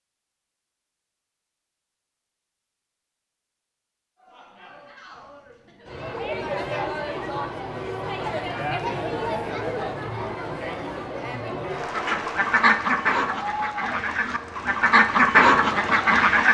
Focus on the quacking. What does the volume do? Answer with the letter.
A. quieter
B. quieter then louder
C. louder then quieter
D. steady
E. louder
B.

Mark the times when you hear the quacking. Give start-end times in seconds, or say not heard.
11.9-16.4.